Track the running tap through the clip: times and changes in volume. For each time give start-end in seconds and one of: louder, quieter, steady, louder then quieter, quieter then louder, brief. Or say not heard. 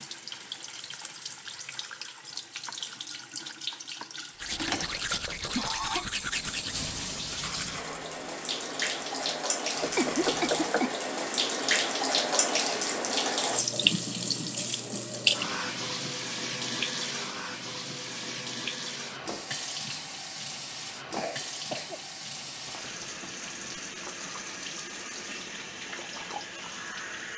0.0-27.3 louder then quieter.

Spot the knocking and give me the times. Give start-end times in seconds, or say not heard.
4.8-5.8, 9.8-10.8, 22.4-23.7.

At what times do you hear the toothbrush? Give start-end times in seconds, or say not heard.
4.3-10.8.